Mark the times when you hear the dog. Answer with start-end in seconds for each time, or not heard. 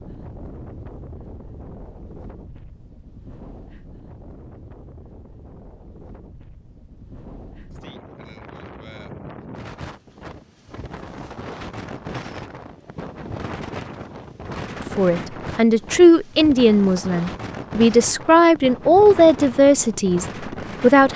not heard.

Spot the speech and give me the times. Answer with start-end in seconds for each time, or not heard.
14.9-21.1.